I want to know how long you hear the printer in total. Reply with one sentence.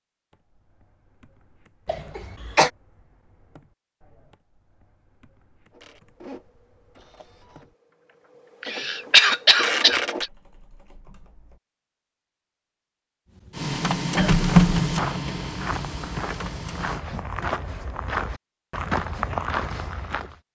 The printer can be heard for 8 seconds in total.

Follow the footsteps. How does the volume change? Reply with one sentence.
The volume of the footsteps goes up.